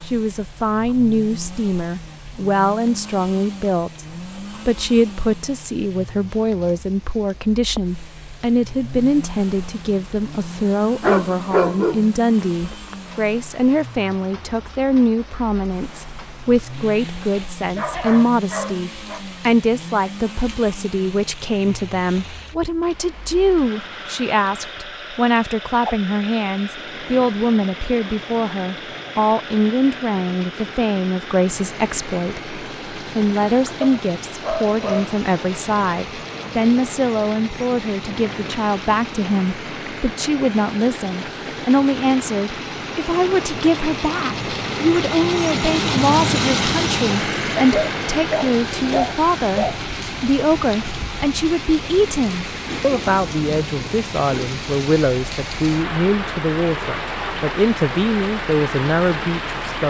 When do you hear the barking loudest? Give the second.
12 s.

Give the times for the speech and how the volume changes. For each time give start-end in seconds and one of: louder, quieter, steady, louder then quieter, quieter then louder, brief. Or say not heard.
0.1-59.8 steady.